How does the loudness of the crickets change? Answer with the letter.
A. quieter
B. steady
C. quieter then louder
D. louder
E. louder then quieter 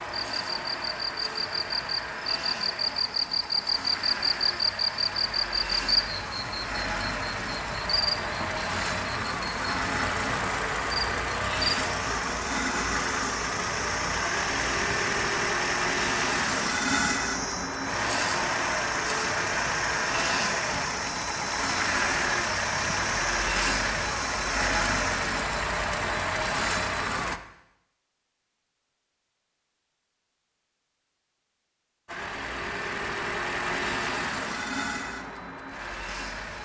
A.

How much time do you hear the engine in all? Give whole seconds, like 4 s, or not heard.
32 s.